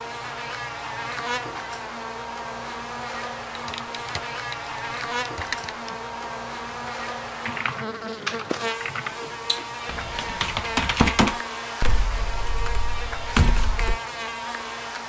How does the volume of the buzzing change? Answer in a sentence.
The loudness of the buzzing stays about the same.